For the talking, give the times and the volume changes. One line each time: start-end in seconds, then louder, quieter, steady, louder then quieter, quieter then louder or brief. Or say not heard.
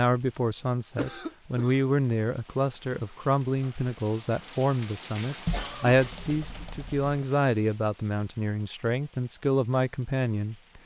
0.0-10.8 steady.